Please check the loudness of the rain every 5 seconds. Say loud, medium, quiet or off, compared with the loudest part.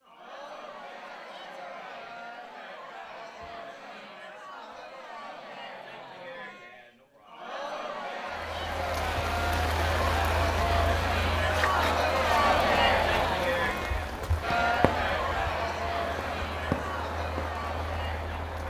off, loud, loud, loud.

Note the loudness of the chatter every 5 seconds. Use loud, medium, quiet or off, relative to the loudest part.
quiet, medium, loud, medium.